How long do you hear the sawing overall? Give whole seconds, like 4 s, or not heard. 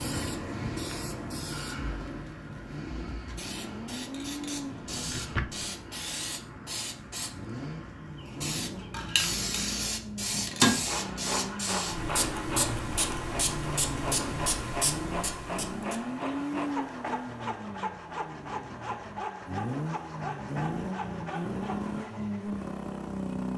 12 s.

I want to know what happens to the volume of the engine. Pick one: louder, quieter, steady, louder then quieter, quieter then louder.
louder.